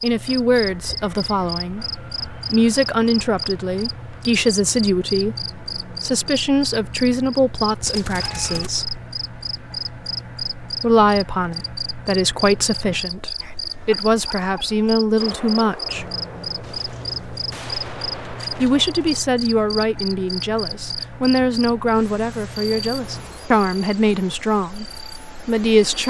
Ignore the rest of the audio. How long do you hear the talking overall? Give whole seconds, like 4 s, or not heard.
22 s.